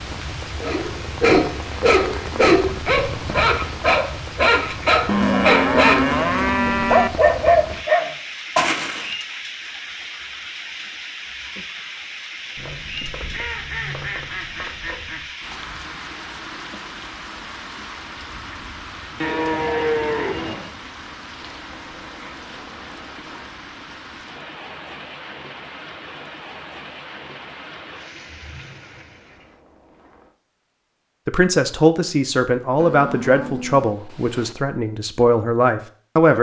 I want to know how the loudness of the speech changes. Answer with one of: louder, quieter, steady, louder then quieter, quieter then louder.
quieter then louder.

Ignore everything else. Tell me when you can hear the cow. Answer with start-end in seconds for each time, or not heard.
5.0-7.1, 19.2-20.8, 32.8-34.5.